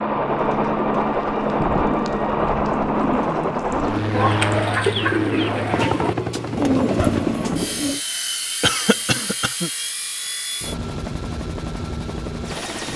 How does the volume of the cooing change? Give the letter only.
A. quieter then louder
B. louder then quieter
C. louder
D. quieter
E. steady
C.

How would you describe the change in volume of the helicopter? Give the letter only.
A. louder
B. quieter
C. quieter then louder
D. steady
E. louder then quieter
B.